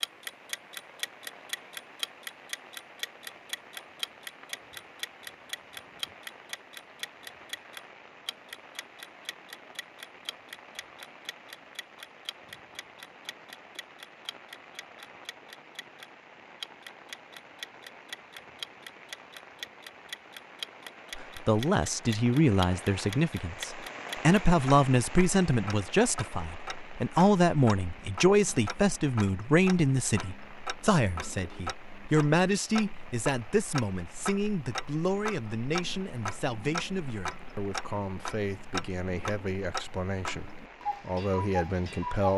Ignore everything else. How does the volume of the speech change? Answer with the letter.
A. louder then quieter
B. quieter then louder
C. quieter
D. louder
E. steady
C.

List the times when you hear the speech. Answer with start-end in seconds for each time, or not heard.
21.1-42.3.